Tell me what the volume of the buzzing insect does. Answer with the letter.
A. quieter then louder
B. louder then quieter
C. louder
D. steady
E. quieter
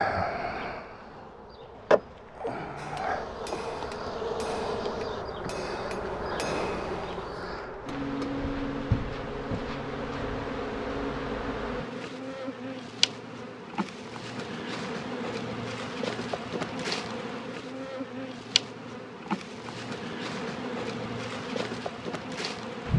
D.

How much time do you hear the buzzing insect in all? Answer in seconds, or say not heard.
23 s.